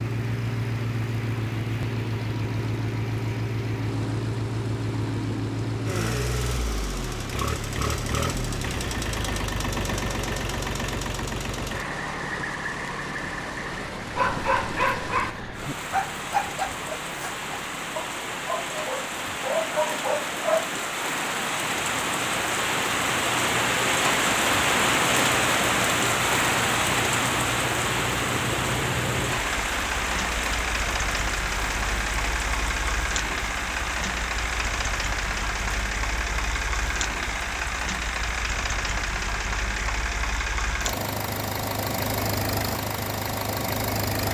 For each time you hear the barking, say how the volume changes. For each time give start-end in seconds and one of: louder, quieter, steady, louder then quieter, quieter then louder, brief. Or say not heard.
14.2-20.6 quieter then louder.